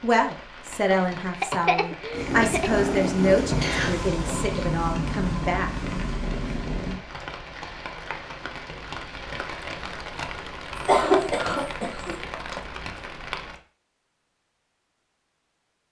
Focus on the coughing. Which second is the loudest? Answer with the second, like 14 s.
11 s.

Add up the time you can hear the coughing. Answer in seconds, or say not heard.
3 s.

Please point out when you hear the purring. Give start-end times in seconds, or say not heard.
2.1-7.0.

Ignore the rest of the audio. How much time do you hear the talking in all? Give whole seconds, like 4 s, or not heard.
6 s.